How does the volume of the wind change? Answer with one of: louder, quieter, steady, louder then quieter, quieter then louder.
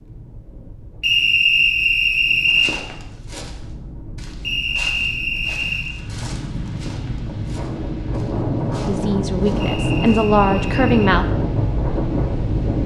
louder.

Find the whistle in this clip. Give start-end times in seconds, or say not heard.
1.0-2.7, 4.4-6.0, 9.6-11.2.